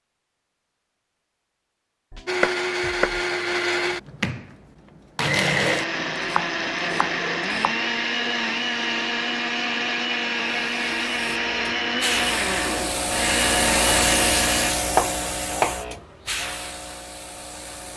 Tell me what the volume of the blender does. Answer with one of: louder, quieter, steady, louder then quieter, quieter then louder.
steady.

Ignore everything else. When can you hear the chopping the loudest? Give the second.
15 s.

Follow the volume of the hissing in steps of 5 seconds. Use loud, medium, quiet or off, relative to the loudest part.
off, off, loud, medium.